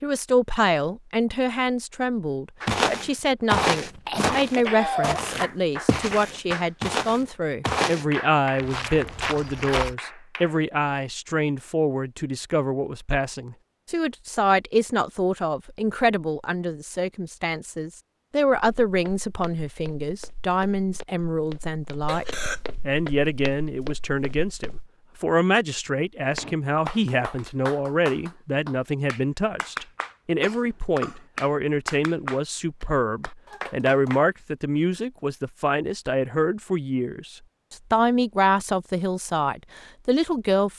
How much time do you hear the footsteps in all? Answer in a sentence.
The footsteps can be heard for 14 seconds in total.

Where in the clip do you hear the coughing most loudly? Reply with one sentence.
The loudest moment of the coughing is at 5 seconds.